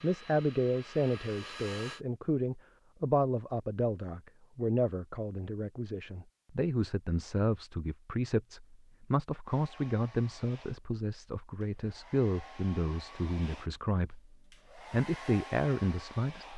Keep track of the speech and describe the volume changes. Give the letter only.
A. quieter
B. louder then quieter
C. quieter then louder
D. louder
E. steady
E.